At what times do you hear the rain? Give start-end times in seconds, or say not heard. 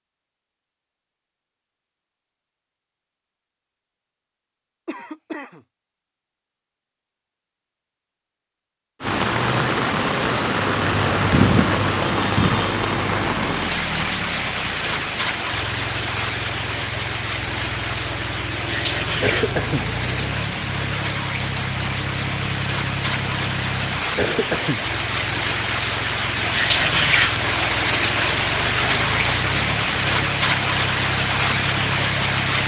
9.0-32.6.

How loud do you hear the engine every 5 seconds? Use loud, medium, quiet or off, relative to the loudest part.
off, off, loud, loud, loud, loud, loud.